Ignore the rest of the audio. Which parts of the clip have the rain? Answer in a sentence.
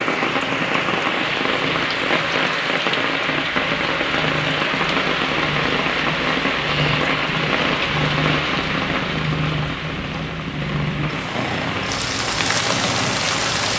The rain can be heard from 0.0 to 13.7 s.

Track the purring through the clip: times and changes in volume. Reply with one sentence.
You can hear the purring from 0.0 to 13.7 s, getting louder.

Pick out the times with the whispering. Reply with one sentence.
The whispering can't be heard in this clip.